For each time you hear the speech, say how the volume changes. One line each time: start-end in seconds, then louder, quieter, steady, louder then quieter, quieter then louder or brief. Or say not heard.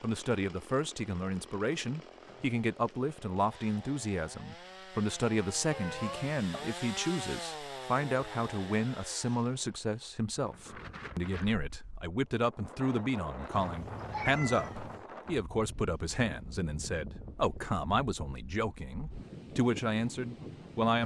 0.0-21.0 steady.